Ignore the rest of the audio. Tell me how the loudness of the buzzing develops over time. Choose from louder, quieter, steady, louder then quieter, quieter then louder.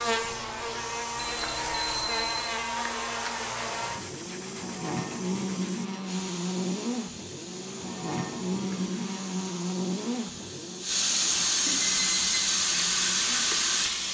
quieter.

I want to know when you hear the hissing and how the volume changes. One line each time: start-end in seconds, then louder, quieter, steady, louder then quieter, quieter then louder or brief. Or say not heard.
0.0-14.0 louder.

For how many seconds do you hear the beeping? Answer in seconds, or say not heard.
2 s.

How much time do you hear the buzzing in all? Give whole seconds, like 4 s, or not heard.
14 s.